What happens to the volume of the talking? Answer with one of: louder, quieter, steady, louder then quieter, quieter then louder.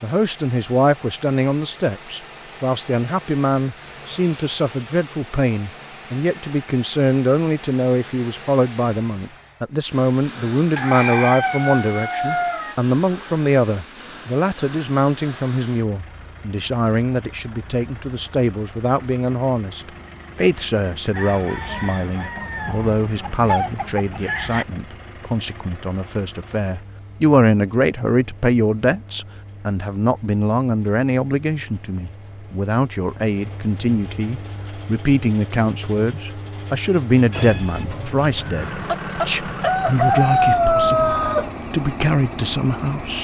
steady.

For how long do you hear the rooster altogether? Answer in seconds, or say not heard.
10 s.